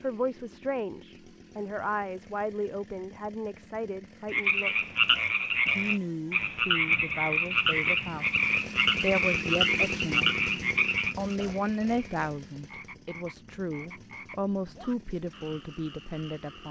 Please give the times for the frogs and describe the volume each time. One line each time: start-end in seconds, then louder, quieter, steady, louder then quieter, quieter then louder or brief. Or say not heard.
4.3-16.6 quieter.